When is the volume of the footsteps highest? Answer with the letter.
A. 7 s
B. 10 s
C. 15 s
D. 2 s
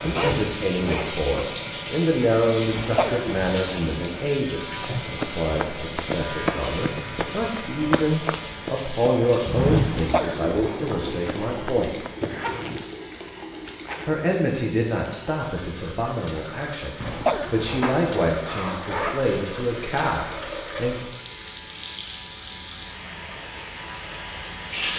B.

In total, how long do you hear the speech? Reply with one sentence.
You can hear the speech for 19 seconds altogether.